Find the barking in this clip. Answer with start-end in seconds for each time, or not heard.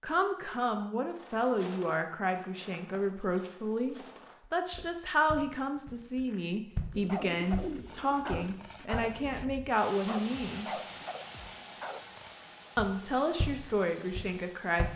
7.0-12.3.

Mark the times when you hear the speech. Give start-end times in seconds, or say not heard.
0.0-10.8, 12.8-14.9.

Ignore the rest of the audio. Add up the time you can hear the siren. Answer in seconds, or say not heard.
not heard.